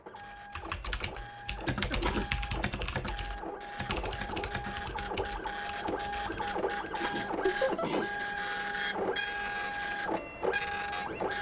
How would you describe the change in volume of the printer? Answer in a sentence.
The volume of the printer goes up.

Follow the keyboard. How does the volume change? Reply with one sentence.
The loudness of the keyboard goes down.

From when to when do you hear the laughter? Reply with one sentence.
You can hear the laughter from 1.4 to 2.0 s and from 7.5 to 7.9 s.